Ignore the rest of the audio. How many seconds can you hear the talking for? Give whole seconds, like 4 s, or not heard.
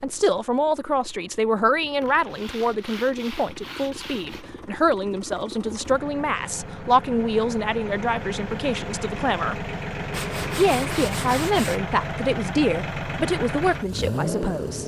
14 s.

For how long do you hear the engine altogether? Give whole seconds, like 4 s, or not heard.
15 s.